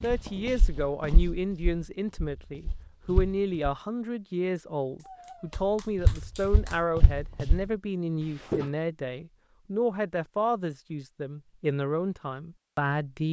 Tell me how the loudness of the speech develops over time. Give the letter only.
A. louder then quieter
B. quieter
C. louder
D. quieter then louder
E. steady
E.